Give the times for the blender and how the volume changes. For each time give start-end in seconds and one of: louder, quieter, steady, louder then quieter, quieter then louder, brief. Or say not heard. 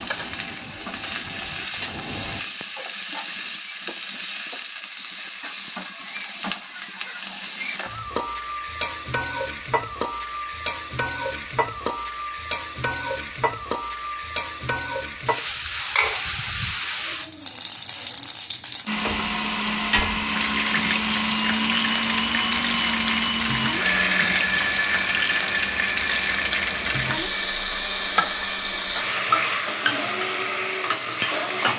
18.9-31.7 quieter.